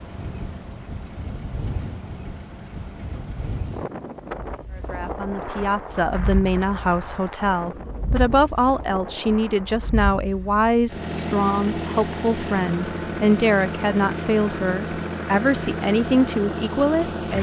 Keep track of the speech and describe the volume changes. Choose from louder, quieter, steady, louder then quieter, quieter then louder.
steady.